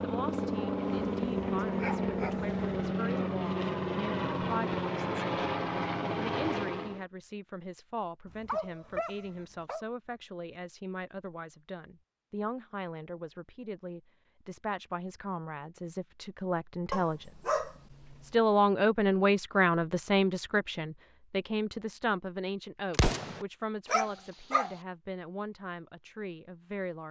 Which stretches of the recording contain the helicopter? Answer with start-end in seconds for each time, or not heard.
0.0-7.0.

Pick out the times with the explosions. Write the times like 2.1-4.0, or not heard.
22.9-23.4.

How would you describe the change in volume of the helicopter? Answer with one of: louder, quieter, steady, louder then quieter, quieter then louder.
steady.